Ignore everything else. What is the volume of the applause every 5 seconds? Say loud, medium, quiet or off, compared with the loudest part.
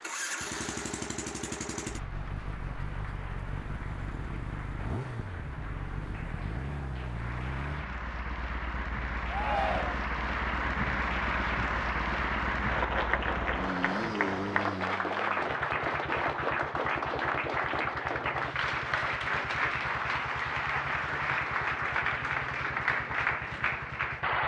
quiet, medium, loud, loud, loud.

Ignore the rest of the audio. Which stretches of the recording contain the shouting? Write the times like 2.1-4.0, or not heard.
9.2-10.0.